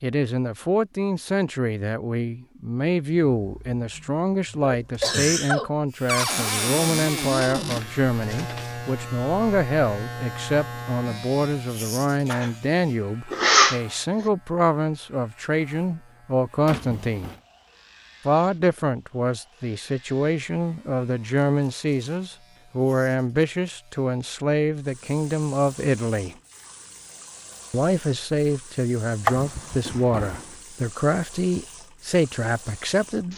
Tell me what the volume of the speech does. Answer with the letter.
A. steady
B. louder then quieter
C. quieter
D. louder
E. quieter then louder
A.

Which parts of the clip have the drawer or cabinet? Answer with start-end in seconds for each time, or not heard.
6.0-7.8, 16.6-17.4, 29.9-30.6.